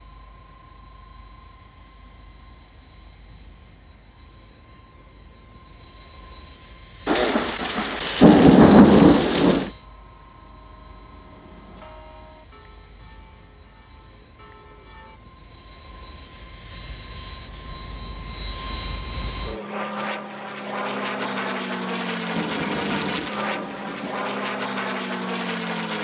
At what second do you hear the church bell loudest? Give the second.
12 s.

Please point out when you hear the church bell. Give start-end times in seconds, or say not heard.
9.7-15.2.